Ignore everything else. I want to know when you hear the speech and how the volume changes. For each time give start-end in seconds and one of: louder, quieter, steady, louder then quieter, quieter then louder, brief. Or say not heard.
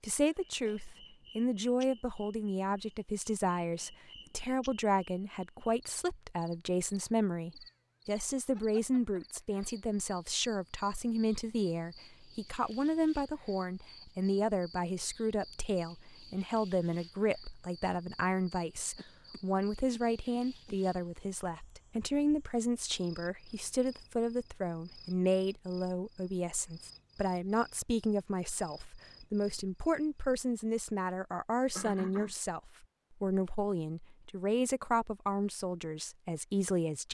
0.0-37.0 steady.